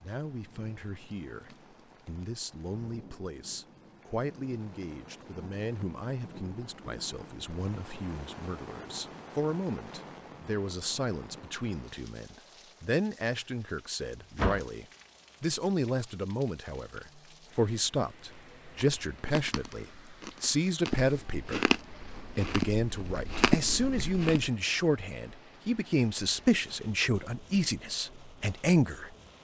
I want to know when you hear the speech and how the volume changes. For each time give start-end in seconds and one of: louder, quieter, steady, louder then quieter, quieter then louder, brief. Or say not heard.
0.0-29.1 louder.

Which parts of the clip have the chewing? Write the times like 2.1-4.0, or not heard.
18.3-24.5.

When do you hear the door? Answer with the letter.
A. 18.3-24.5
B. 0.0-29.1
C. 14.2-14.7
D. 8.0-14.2
C.